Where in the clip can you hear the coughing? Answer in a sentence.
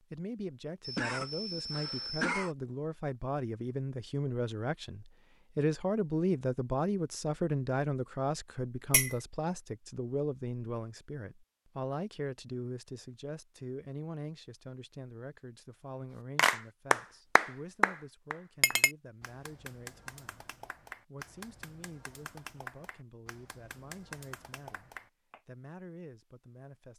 You can hear the coughing from 0.8 to 2.5 s.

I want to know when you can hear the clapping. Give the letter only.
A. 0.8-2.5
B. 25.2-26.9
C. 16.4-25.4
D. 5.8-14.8
C.